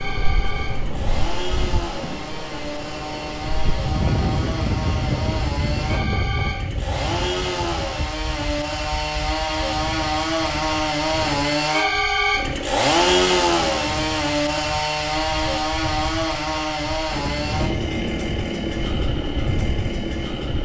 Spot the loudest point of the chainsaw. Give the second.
13 s.